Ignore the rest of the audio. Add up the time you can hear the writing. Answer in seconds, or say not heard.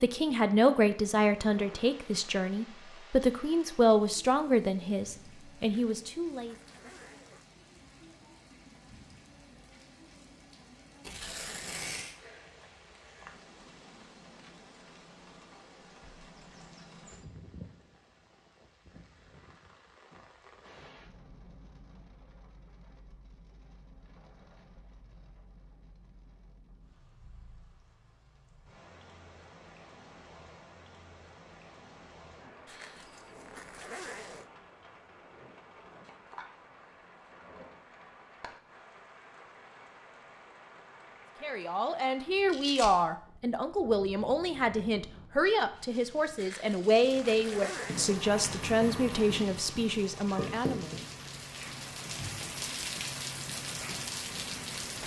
7 s.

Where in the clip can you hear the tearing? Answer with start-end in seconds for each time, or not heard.
11.0-12.2, 42.5-42.9.